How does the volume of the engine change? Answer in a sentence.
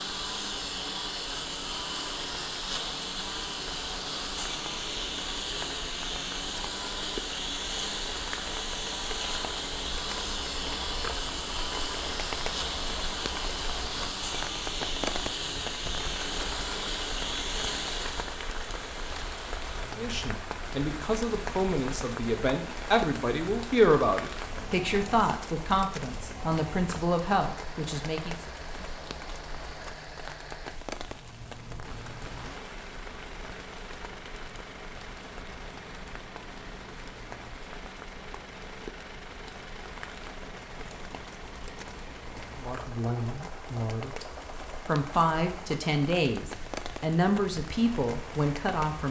The volume of the engine goes down.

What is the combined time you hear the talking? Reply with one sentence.
The talking can be heard for 15 seconds in total.